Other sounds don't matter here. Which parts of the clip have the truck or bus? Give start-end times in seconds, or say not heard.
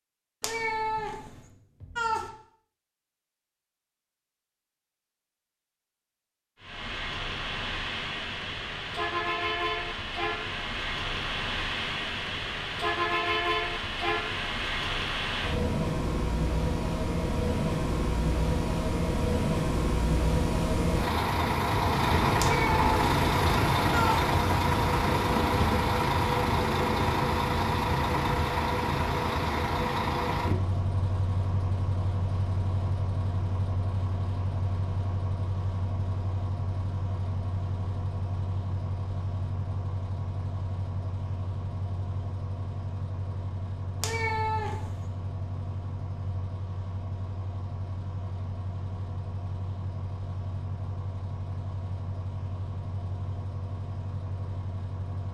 6.6-55.2.